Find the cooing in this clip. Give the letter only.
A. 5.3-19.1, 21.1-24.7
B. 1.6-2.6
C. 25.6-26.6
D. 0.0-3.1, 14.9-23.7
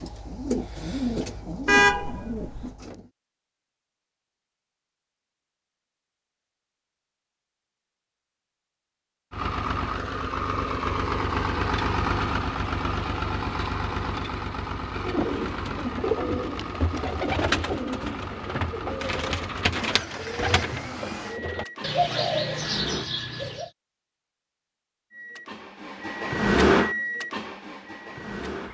D.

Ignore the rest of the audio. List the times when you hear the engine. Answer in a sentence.
You can hear the engine from 9.3 to 23.1 s and from 25.1 to 28.7 s.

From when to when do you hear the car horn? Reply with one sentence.
You can hear the car horn from 1.6 to 2.6 s.